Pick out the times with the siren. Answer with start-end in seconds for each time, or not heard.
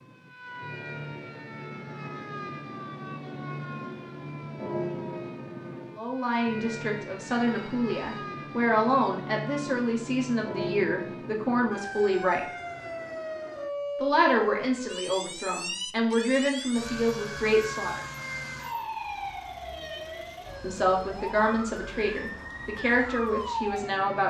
0.0-24.2.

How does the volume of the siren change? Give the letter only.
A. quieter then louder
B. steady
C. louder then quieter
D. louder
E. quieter
B.